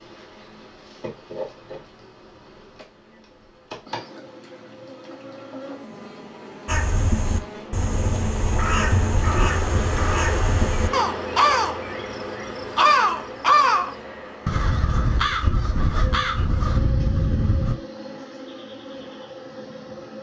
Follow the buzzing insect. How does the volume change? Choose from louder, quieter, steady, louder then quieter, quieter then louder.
louder then quieter.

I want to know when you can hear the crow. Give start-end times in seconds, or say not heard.
6.7-11.8, 12.6-17.8.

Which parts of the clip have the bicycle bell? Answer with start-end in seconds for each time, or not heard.
not heard.